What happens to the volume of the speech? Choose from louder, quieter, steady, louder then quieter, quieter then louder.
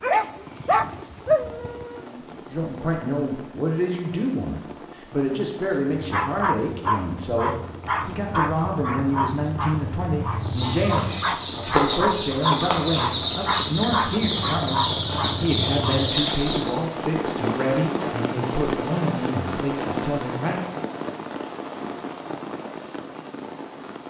steady.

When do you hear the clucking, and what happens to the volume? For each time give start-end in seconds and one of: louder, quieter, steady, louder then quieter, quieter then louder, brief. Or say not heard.
10.4-16.8 steady.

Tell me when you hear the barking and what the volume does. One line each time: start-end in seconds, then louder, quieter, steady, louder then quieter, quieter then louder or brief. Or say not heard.
0.0-2.0 brief
5.9-16.1 steady.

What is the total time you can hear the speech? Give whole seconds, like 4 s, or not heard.
19 s.